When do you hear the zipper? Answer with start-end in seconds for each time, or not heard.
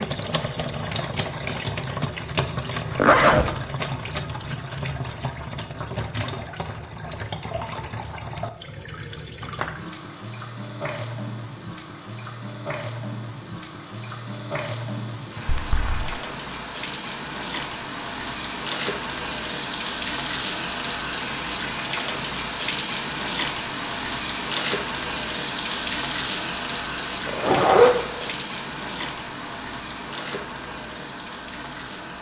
3.0-3.5, 15.4-16.1, 27.2-28.2.